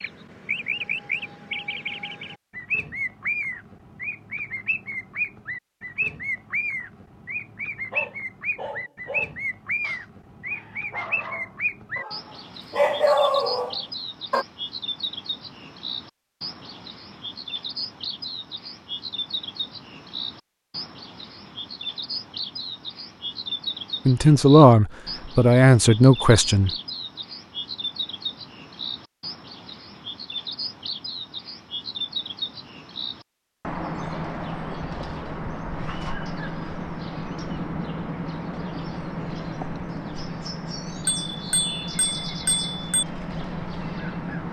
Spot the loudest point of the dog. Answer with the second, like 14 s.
13 s.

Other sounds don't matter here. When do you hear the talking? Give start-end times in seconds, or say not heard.
24.1-26.7.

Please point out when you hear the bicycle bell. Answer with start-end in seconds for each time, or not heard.
41.0-43.0.